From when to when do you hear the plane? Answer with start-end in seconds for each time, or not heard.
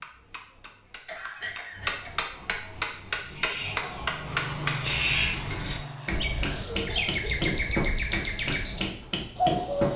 3.8-6.6.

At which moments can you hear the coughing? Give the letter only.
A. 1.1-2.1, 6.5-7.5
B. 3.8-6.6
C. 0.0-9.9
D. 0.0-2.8
A.